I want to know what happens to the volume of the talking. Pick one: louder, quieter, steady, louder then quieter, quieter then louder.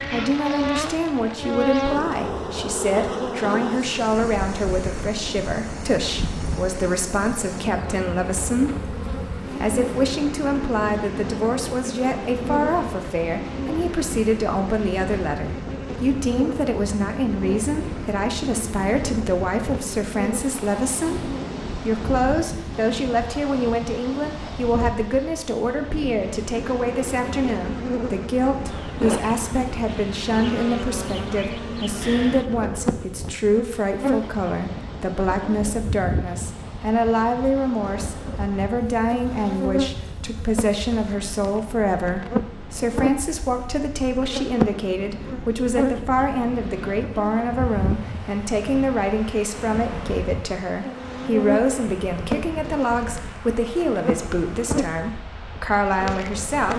steady.